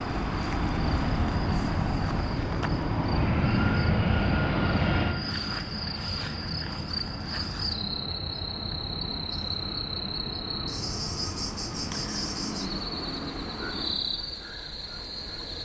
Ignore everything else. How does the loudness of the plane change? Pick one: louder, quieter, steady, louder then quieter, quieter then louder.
quieter.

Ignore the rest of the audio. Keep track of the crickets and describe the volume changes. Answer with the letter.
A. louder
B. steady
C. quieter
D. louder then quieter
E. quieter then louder
A.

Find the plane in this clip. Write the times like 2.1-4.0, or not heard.
0.0-14.3.